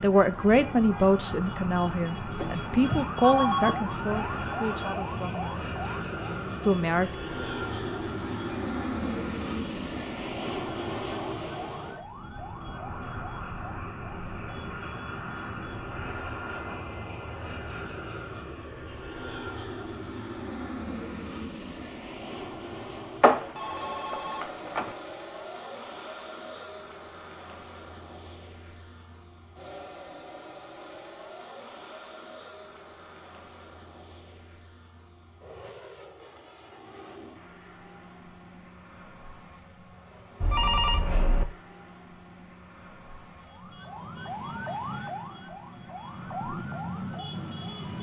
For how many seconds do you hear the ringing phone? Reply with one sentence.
You can hear the ringing phone for 4 seconds altogether.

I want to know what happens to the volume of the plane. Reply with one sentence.
The volume of the plane goes down.